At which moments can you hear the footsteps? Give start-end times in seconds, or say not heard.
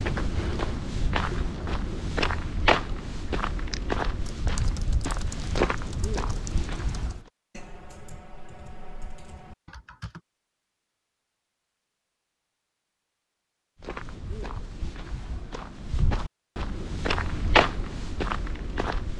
0.0-7.2, 13.8-19.1.